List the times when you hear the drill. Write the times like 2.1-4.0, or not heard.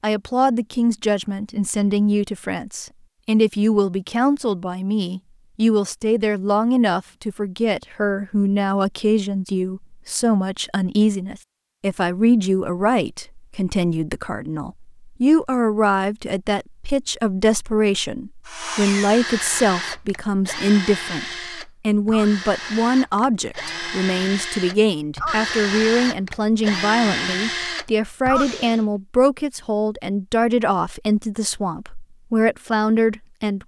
18.4-28.9.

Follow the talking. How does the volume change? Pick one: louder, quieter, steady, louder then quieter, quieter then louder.
steady.